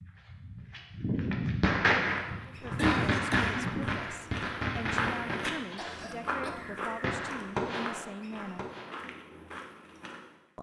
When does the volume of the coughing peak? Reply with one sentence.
The loudest moment of the coughing is at 3 seconds.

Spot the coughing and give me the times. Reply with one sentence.
The coughing can be heard from 2.8 to 3.6 s and from 5.8 to 6.8 s.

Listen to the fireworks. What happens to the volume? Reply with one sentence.
The loudness of the fireworks goes down, then up.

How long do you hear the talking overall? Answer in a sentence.
You can hear the talking for 6 seconds altogether.